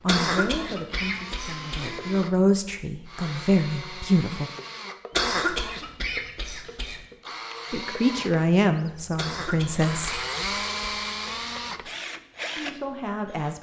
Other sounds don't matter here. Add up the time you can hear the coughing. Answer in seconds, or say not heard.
6 s.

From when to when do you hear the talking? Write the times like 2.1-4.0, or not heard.
0.0-4.5, 7.7-10.2, 12.6-13.5.